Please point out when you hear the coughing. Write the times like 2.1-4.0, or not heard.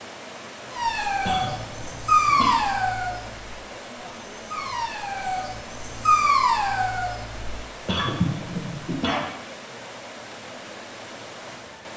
1.2-2.6, 7.8-9.2.